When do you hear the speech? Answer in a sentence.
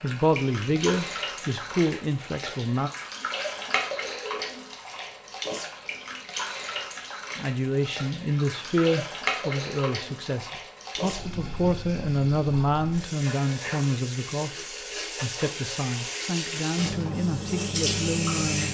The speech can be heard from 0.0 to 2.9 s, from 7.3 to 14.6 s and from 15.2 to 18.6 s.